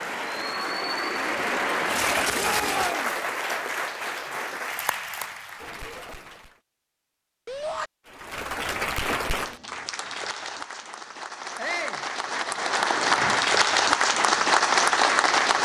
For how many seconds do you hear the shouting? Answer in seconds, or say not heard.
2 s.